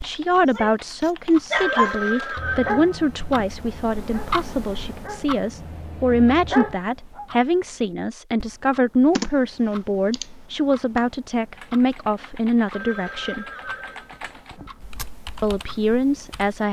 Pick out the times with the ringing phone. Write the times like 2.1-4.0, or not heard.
1.5-3.5, 12.7-14.7.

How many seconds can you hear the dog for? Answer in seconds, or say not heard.
7 s.